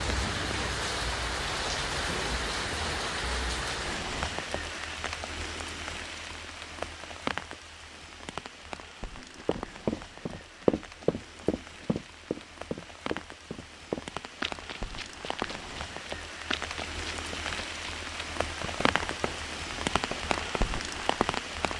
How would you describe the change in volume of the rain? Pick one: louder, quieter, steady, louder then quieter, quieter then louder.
quieter then louder.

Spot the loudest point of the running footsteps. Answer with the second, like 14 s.
11 s.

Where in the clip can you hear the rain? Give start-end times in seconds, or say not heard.
0.0-21.7.